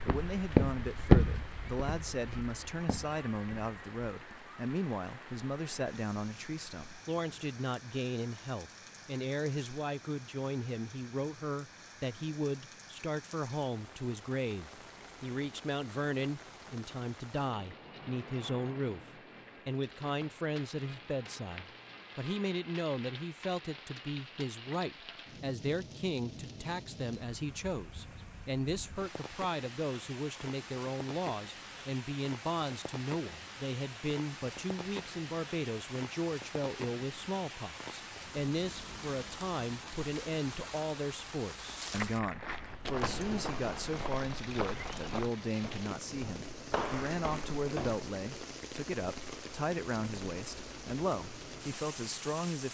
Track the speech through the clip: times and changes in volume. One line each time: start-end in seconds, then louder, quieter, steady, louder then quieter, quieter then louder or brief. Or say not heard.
0.0-52.6 steady.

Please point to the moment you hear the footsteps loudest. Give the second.
1 s.